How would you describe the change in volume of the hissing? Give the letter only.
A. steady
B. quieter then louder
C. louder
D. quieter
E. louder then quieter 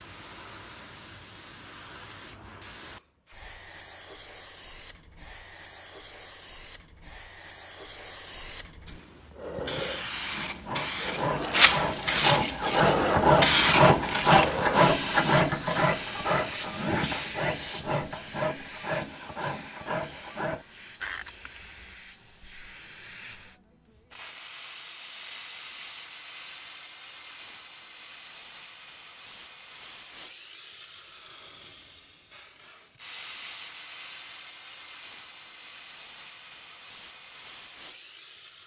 E.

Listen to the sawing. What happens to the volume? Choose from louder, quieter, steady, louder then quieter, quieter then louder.
louder then quieter.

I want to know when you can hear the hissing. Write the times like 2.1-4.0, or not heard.
0.0-38.6.